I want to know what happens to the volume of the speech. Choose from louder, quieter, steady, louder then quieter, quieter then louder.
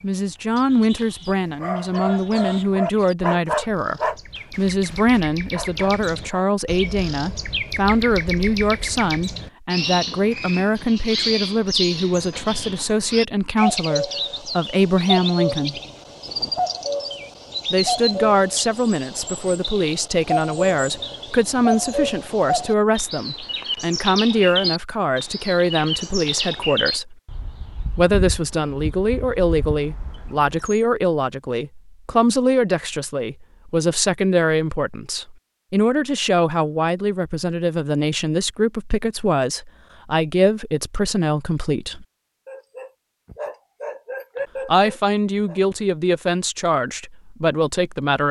steady.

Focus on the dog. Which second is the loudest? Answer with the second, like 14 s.
3 s.